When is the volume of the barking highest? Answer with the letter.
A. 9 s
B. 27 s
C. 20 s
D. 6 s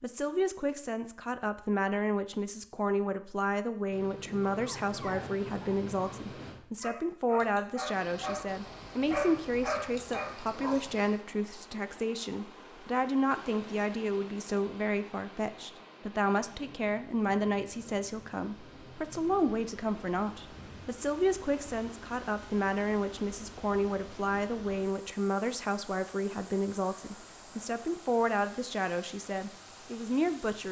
A.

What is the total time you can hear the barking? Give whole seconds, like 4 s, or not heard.
6 s.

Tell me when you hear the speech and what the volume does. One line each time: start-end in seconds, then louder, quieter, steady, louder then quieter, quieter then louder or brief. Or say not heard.
0.0-30.6 steady.